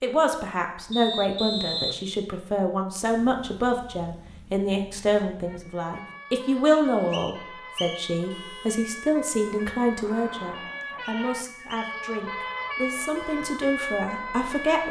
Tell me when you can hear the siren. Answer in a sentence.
You can hear the siren from 5.5 to 14.8 s.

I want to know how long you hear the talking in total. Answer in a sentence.
You can hear the talking for 15 seconds altogether.